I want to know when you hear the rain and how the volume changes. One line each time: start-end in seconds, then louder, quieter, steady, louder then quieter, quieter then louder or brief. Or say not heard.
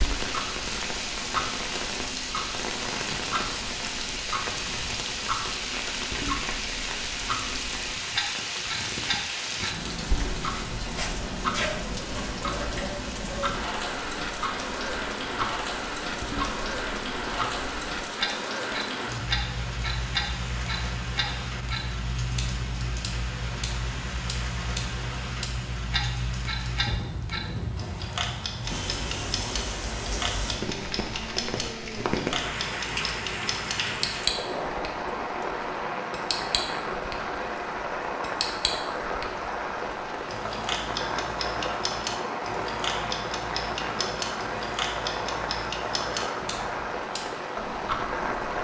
0.0-48.6 steady.